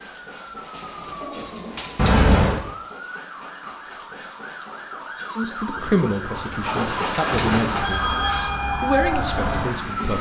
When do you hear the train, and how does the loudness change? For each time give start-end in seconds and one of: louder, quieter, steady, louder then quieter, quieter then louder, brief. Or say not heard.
0.0-10.1 louder.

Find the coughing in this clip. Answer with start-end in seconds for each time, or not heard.
not heard.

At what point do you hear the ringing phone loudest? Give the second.
2 s.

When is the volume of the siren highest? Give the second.
8 s.